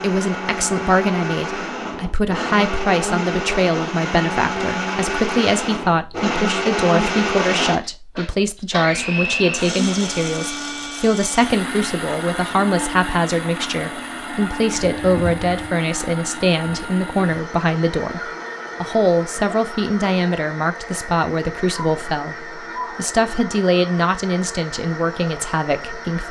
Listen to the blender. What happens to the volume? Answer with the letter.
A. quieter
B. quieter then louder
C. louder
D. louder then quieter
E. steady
A.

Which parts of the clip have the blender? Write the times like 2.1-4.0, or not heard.
0.0-26.2.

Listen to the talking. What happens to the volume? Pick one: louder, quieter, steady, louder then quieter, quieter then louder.
steady.